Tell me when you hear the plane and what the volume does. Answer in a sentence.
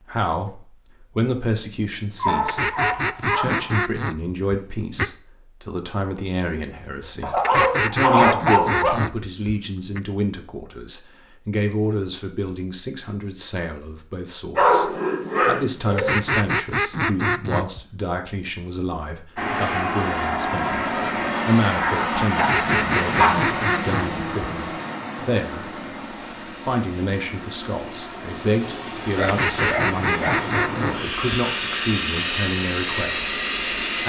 The plane can be heard from 19.4 to 34.0 s, getting quieter then louder.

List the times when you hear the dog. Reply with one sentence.
The dog can be heard from 2.1 to 3.8 s, from 7.2 to 9.0 s, from 14.6 to 16.2 s, from 21.8 to 23.4 s and from 29.1 to 30.5 s.